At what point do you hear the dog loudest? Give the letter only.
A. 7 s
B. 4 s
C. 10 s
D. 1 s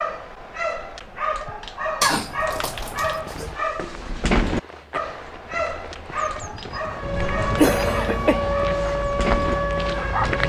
B.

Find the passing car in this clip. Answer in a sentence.
The passing car can't be heard in this clip.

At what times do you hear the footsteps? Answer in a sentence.
The footsteps can be heard from 2.8 to 10.4 s.